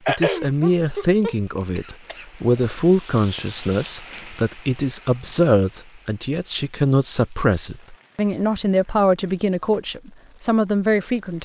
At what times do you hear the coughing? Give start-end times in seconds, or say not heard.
0.1-2.8.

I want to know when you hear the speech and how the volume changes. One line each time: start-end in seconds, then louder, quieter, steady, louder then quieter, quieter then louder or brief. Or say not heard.
0.1-11.3 steady.